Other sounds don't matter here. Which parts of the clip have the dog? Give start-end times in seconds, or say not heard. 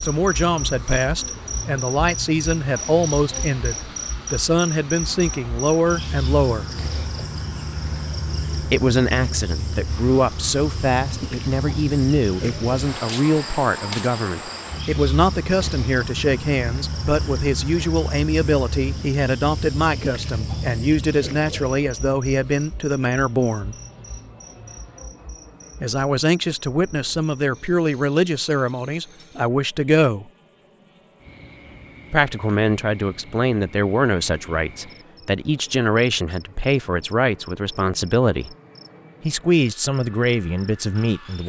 not heard.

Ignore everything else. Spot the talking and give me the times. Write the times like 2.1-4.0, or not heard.
0.0-6.7, 8.6-23.8, 25.8-30.2, 32.1-38.5, 39.2-41.4.